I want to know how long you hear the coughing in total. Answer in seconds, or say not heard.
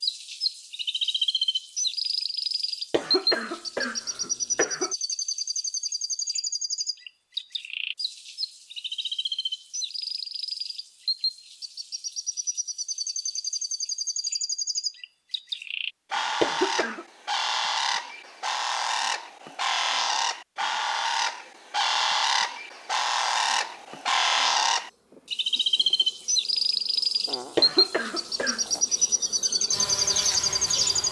4 s.